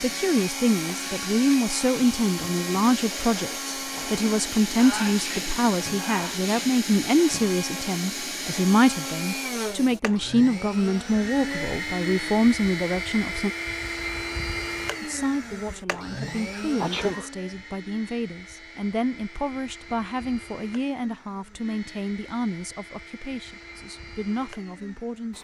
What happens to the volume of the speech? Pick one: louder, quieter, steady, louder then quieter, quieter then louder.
quieter.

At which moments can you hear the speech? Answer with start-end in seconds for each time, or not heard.
0.0-13.5, 15.0-25.3.